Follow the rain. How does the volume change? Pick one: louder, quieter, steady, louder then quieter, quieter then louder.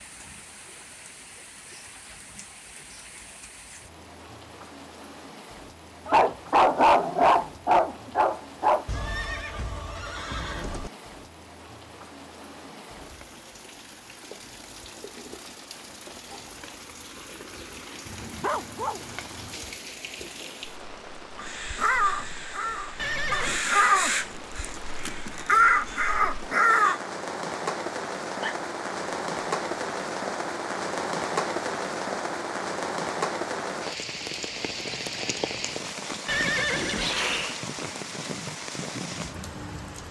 louder.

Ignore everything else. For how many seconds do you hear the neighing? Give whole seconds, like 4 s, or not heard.
4 s.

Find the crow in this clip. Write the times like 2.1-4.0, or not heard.
21.4-27.0.